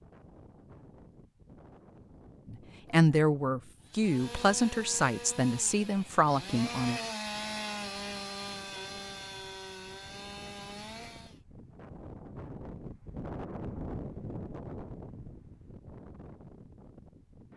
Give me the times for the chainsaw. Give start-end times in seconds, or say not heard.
3.8-11.4.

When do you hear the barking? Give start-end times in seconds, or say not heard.
not heard.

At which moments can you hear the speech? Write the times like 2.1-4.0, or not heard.
2.5-7.0.